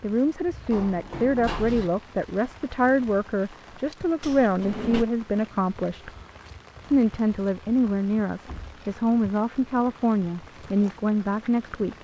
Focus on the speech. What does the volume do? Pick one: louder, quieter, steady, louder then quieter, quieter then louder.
steady.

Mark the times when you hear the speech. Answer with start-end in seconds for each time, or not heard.
0.0-6.1, 6.8-11.9.